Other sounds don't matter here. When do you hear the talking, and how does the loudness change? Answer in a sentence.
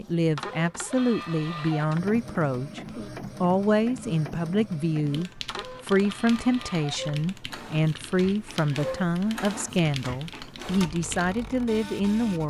You can hear the talking from 0.0 to 12.4 s, at a steady volume.